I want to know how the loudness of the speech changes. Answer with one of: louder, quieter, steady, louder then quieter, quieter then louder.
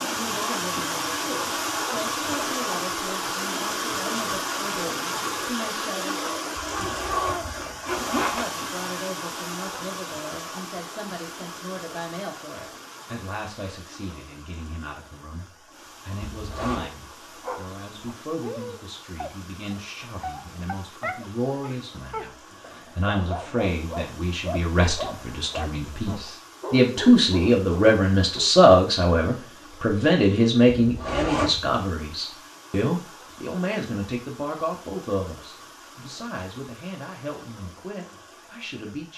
louder then quieter.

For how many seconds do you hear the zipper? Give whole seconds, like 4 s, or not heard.
3 s.